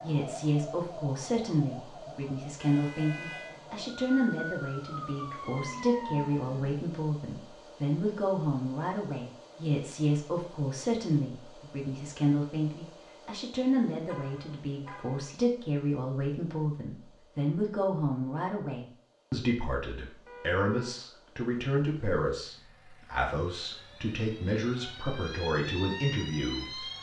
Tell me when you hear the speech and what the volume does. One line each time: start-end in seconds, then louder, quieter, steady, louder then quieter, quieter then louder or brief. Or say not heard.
0.0-26.9 steady.